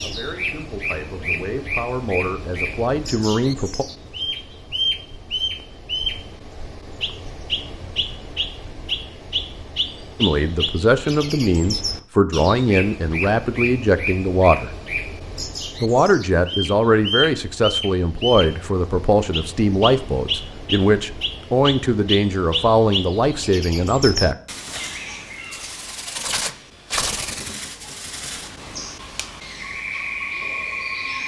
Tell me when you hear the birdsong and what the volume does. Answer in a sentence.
The birdsong can be heard from 0.0 to 31.2 s, at a steady volume.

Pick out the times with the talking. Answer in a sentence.
You can hear the talking from 0.0 to 3.9 s, from 10.2 to 14.7 s and from 15.8 to 24.4 s.